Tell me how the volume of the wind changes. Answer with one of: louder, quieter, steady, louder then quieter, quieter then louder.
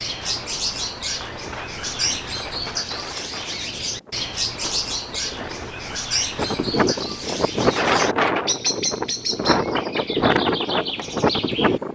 louder.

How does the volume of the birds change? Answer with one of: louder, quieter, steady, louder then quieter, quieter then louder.
steady.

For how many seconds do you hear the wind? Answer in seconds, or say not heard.
12 s.